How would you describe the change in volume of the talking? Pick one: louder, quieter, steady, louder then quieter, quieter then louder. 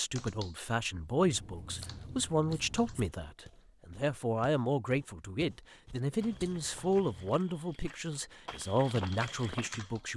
steady.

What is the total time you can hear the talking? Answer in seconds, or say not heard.
10 s.